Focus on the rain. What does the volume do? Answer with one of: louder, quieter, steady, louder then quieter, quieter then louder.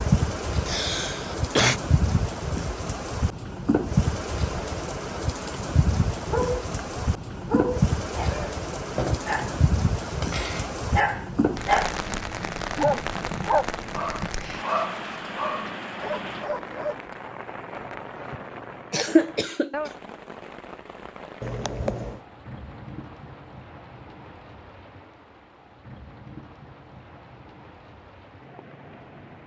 quieter.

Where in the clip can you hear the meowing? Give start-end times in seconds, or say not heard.
21.4-22.2.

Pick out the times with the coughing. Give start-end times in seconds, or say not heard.
0.7-1.8, 18.9-19.9.